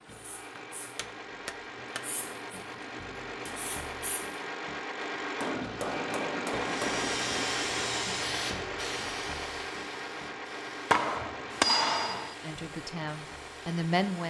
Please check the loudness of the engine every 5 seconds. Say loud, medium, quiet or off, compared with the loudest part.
medium, loud, medium.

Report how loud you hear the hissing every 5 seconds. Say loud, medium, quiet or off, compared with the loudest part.
quiet, loud, quiet.